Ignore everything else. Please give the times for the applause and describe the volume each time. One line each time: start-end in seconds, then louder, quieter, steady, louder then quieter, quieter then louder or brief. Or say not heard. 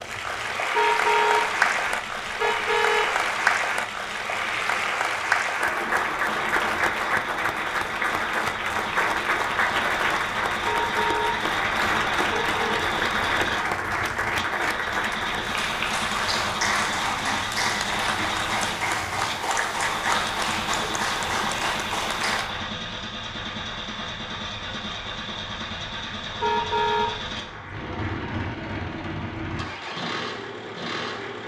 0.0-31.4 quieter.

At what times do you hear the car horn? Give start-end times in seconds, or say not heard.
0.8-1.5, 2.4-3.1, 10.7-11.4, 12.3-12.8, 26.4-27.1.